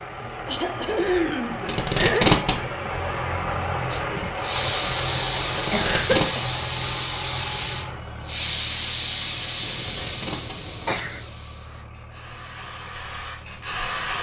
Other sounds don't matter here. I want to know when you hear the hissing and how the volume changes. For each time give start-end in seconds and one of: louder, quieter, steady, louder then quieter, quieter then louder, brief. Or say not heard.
3.9-14.1 quieter.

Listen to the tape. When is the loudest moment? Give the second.
2 s.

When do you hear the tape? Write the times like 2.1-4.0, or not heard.
1.6-2.5, 5.5-6.2, 9.8-11.2.